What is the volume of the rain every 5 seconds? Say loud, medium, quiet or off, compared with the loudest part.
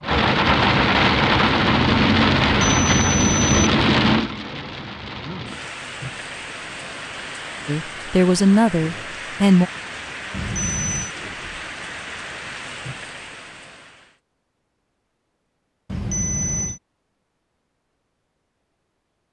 loud, quiet, quiet, off.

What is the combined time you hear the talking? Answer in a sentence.
You can hear the talking for 2 seconds altogether.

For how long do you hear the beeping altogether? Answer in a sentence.
The beeping can be heard for 3 seconds in total.